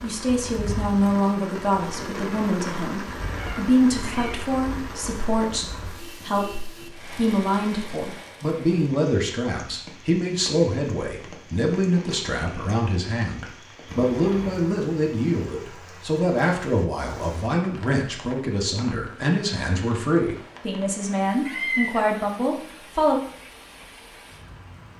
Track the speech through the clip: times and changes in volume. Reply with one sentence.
You can hear the speech from 0.0 to 23.2 s, at a steady volume.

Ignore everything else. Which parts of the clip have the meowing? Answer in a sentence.
The meowing can be heard from 3.2 to 4.4 s, from 13.8 to 14.7 s and from 21.4 to 22.1 s.